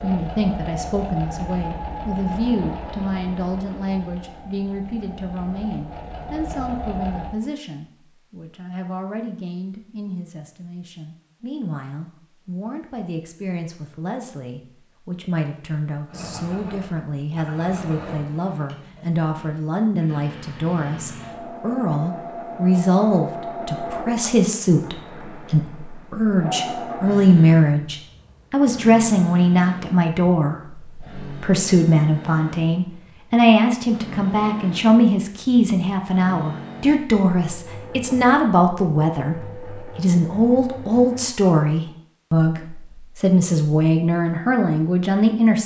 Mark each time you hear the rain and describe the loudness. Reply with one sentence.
The rain can't be heard in this clip.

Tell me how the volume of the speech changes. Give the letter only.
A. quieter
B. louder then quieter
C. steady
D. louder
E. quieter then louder
D.